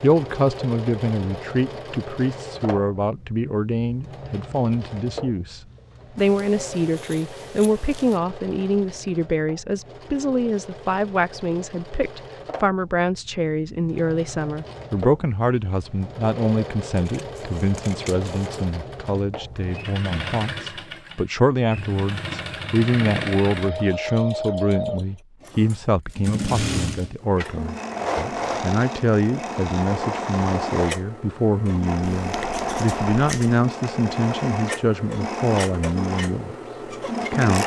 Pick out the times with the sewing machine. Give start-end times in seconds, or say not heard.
0.0-37.6.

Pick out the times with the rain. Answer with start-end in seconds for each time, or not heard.
not heard.